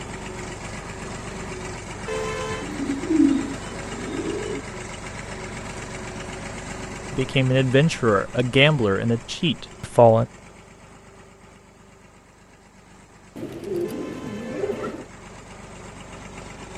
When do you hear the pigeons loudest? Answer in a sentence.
The loudest moment of the pigeons is at 3 seconds.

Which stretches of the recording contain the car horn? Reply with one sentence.
You can hear the car horn from 2.0 to 2.7 s and from 13.8 to 14.9 s.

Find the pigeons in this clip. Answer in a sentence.
You can hear the pigeons from 2.6 to 4.6 s and from 13.3 to 15.1 s.